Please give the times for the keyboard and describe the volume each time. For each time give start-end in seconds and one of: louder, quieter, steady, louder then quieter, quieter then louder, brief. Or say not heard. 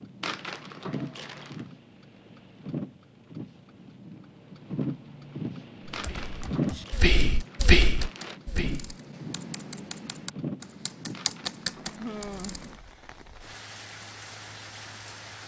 6.1-12.8 louder.